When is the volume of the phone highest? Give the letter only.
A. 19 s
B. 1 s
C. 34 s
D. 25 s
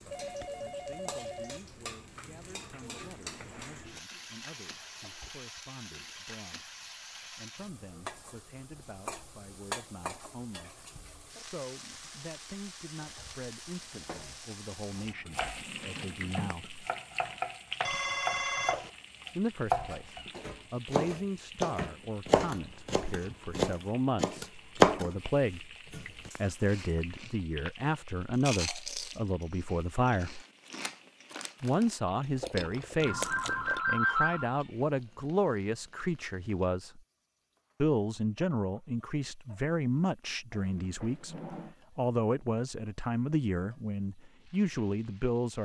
C.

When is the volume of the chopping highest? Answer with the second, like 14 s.
25 s.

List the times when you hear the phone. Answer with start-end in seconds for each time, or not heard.
0.1-1.6, 17.9-18.9, 33.0-34.5.